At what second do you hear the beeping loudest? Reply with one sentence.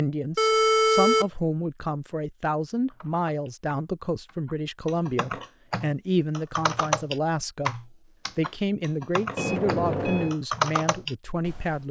The loudest moment of the beeping is at 1 second.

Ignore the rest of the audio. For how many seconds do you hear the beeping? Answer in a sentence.
The beeping can be heard for 2 seconds in total.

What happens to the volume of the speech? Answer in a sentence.
The volume of the speech stays about the same.